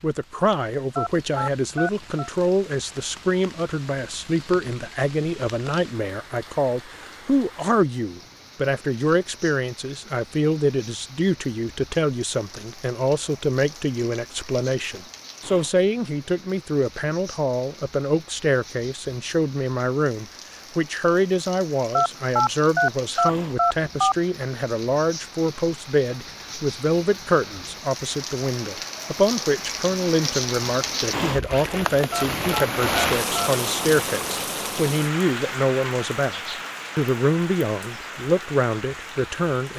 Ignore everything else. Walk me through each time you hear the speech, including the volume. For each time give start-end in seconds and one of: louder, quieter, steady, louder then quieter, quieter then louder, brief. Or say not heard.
0.0-36.4 steady
37.0-39.7 brief.